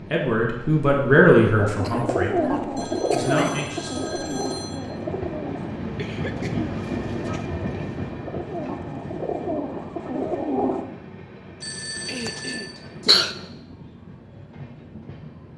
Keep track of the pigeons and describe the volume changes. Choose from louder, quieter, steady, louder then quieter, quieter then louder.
quieter then louder.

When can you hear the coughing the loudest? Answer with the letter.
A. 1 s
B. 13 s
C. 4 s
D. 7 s
B.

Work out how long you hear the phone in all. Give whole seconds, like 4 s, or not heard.
3 s.